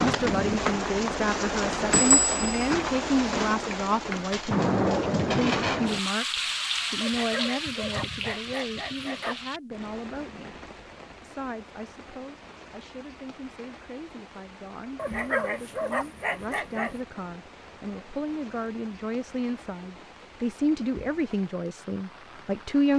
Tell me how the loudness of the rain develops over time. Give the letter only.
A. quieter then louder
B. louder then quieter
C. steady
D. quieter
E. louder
D.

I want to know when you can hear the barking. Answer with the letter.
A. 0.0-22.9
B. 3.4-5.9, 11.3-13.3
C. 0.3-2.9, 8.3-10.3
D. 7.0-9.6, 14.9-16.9
D.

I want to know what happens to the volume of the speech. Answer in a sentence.
The loudness of the speech goes down, then up.